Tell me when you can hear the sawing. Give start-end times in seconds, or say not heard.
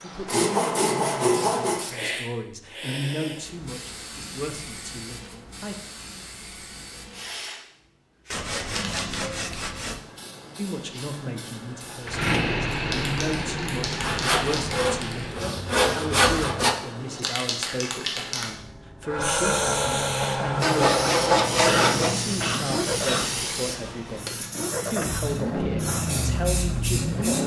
0.2-1.9, 8.3-10.0, 14.0-16.8, 20.6-22.1.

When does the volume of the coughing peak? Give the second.
22 s.